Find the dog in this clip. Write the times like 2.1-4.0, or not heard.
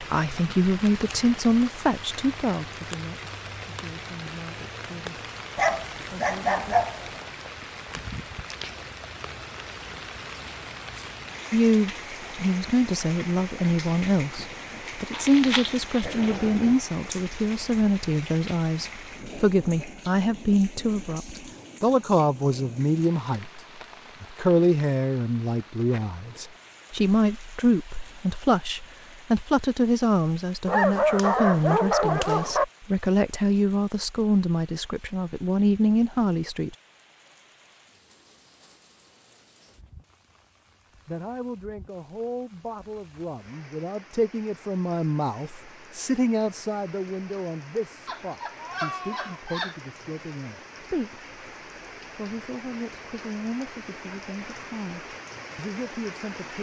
5.5-7.2, 16.0-16.9, 30.6-32.6, 48.0-49.8.